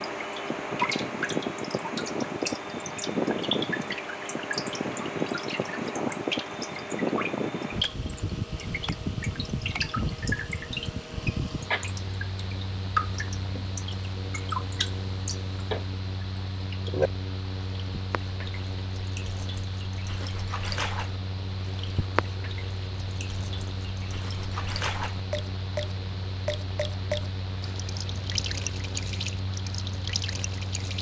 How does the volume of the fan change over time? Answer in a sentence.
The volume of the fan goes down.